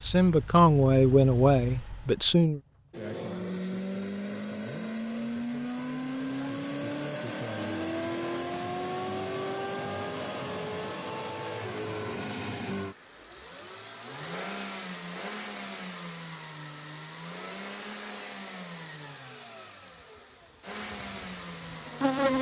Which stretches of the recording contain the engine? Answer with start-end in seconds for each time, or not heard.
0.0-22.3.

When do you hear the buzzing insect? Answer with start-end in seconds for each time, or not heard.
19.9-22.3.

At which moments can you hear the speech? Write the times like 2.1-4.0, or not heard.
0.0-2.6.